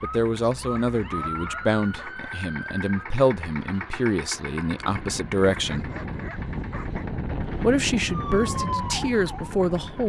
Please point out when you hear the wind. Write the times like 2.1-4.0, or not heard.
4.7-10.0.